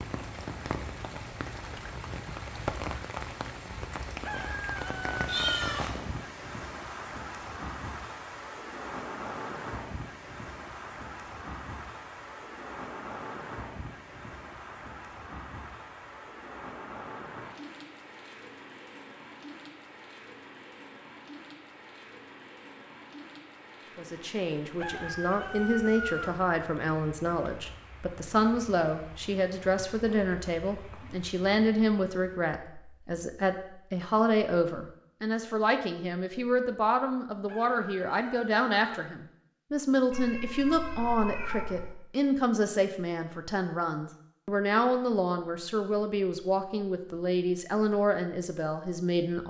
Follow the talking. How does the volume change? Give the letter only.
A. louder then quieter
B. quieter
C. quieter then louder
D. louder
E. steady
E.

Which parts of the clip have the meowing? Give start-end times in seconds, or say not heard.
5.2-6.0, 40.1-42.0.